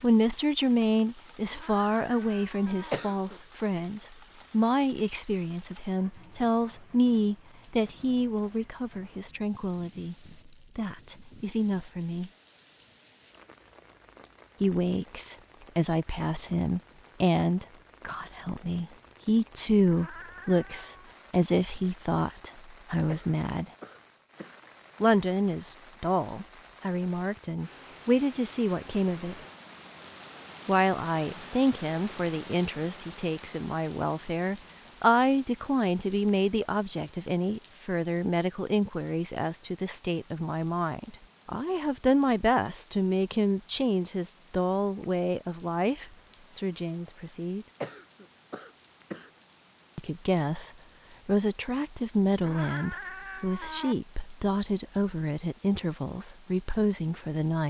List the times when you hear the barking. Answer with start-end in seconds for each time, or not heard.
not heard.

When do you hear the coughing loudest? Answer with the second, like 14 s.
3 s.